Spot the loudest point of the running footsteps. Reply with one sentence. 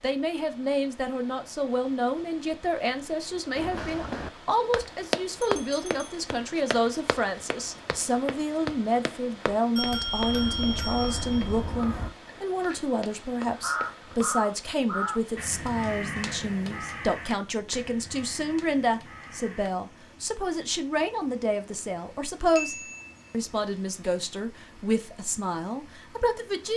The loudest moment of the running footsteps is at 5 seconds.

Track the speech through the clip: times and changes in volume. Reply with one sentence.
You can hear the speech from 0.0 to 26.7 s, at a steady volume.